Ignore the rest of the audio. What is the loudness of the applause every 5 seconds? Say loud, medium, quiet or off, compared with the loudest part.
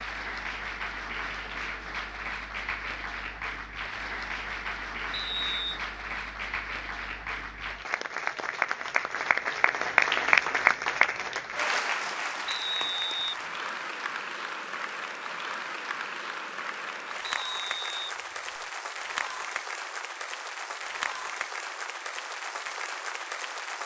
medium, loud, loud, medium, medium.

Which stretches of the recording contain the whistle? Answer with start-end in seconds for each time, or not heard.
5.1-5.8, 12.4-13.4, 17.2-18.6.